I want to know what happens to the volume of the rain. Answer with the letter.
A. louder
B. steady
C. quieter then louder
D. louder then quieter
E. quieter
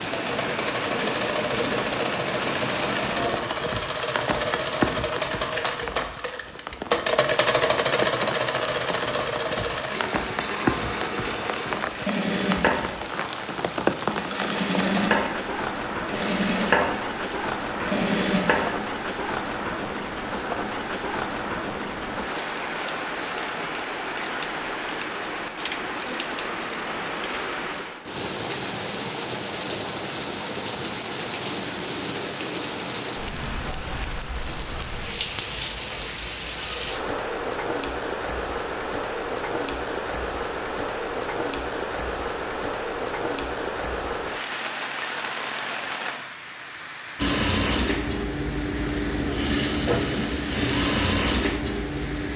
B.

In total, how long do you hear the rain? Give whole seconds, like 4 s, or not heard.
52 s.